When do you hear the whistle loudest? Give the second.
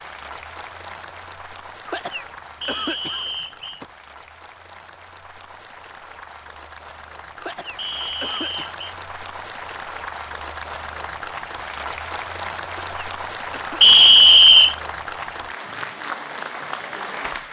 14 s.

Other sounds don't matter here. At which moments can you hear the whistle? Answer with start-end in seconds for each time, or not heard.
2.6-3.8, 7.8-8.7, 13.8-14.8.